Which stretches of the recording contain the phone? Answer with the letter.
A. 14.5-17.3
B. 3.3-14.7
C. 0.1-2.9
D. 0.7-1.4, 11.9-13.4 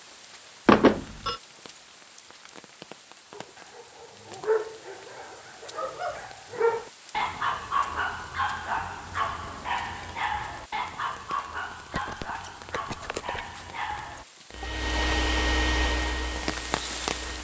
D.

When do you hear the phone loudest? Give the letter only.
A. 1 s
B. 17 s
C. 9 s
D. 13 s
A.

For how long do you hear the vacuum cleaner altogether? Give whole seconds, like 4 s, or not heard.
3 s.